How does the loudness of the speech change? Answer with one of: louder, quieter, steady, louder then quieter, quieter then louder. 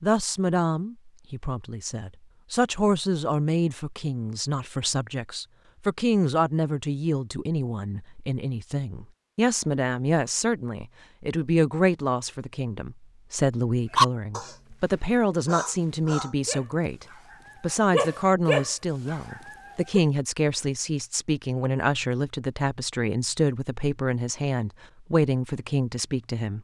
steady.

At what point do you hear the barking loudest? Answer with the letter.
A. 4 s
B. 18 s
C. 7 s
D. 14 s
D.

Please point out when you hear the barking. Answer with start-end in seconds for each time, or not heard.
13.9-20.0.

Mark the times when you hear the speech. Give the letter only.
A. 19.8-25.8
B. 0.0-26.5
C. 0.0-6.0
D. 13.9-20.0
B.